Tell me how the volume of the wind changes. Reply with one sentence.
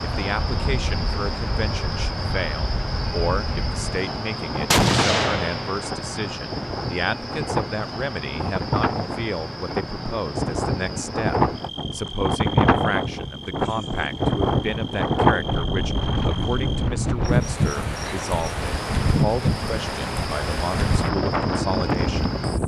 The volume of the wind goes up.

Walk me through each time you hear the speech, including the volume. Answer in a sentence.
You can hear the speech from 0.0 to 22.4 s, at a steady volume.